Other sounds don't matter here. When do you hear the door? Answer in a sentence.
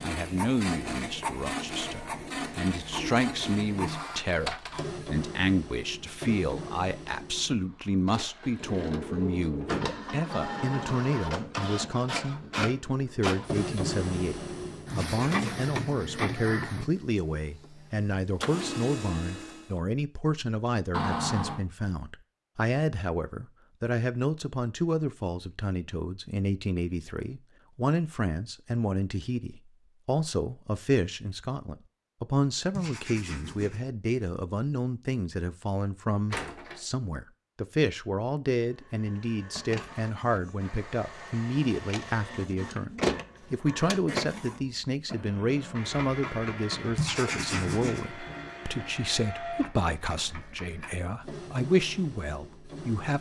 The door can be heard from 8.4 to 9.9 s, from 20.9 to 21.6 s and from 36.3 to 36.9 s.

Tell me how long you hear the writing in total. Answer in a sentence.
The writing can be heard for 3 seconds in total.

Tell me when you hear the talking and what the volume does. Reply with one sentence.
The talking can be heard from 0.0 to 53.1 s, at a steady volume.